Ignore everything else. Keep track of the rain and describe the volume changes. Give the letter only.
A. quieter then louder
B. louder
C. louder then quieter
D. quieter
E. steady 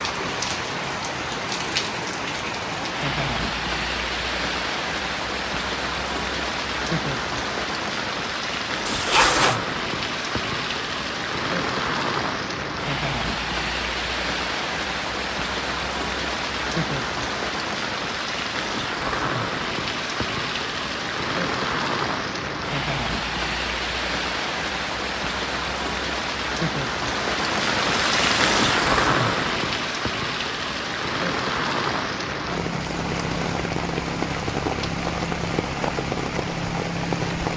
E.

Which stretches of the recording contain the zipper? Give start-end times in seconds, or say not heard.
8.8-9.6.